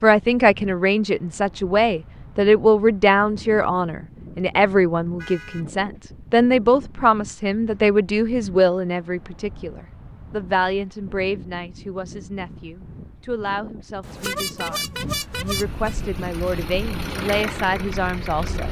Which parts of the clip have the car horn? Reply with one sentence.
You can hear the car horn from 5.2 to 5.7 s and from 14.0 to 15.9 s.